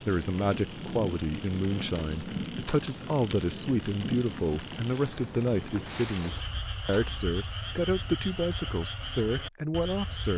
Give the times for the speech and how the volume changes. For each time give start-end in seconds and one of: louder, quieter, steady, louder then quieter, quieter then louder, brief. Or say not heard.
0.1-10.3 steady.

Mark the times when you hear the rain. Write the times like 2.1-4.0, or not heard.
0.0-6.5.